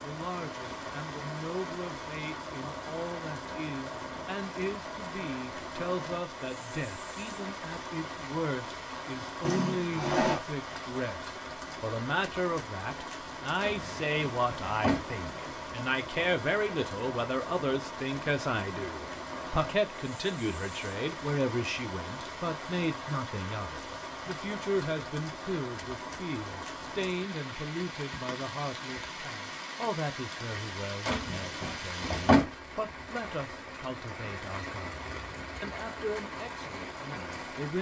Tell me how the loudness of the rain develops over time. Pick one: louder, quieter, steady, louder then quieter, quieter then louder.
steady.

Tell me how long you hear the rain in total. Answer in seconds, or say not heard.
38 s.